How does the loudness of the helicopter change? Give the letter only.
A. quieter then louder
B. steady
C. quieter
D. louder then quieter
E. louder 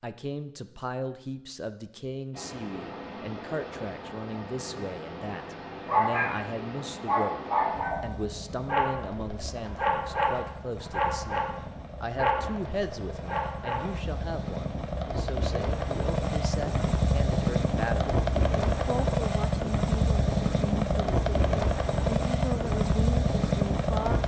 E.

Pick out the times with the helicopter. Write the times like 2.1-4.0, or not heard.
2.3-24.2.